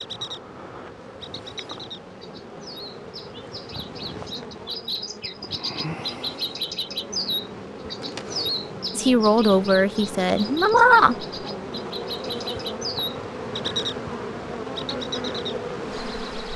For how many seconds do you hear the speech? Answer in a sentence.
You can hear the speech for 2 seconds altogether.